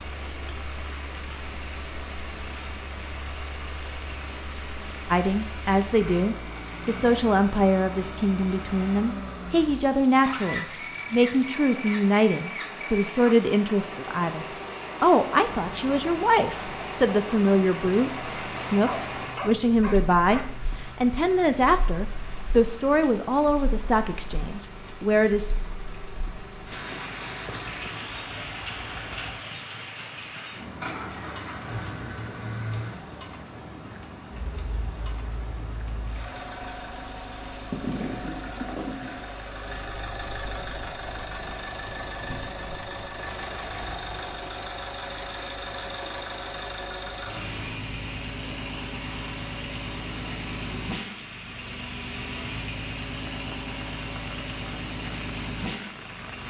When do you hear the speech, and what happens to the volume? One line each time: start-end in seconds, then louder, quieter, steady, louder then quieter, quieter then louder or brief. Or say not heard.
5.1-25.6 steady.